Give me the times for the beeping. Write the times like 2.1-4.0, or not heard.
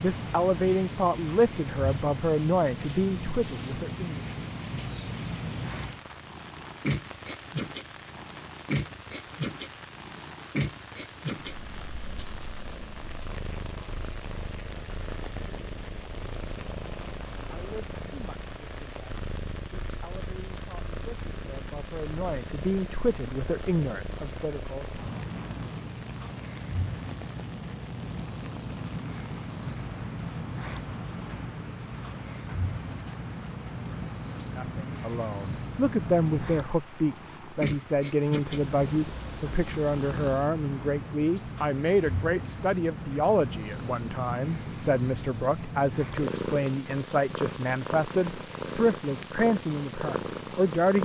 not heard.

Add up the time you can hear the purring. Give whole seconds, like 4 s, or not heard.
51 s.